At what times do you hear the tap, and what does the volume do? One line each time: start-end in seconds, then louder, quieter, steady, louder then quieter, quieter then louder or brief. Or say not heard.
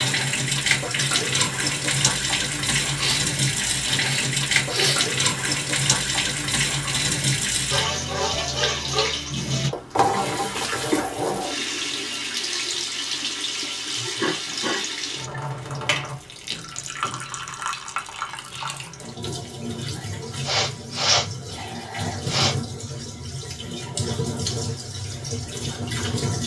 0.0-26.4 quieter.